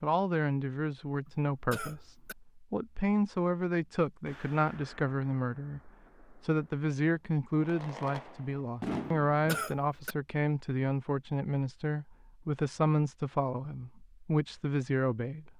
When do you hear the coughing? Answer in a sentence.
You can hear the coughing from 1.2 to 2.4 s and from 9.1 to 10.2 s.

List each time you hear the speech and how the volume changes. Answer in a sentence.
The speech can be heard from 0.0 to 15.5 s, at a steady volume.